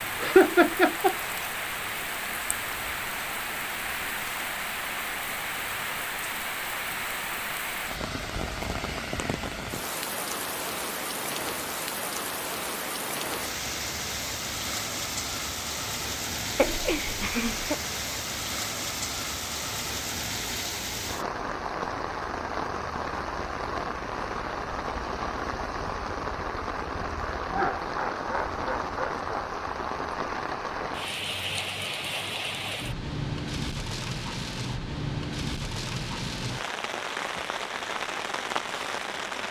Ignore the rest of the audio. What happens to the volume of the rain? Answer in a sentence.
The volume of the rain stays about the same.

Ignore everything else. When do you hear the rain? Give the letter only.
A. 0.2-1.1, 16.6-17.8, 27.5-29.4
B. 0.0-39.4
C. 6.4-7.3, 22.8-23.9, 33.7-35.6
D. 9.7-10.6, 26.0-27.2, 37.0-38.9
B.